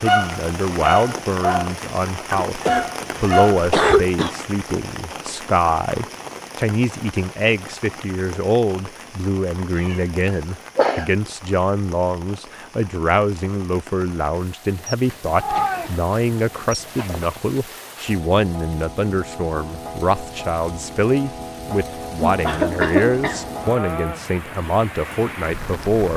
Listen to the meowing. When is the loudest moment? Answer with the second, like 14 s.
16 s.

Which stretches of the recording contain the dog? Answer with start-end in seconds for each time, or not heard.
0.0-1.8, 2.6-3.6.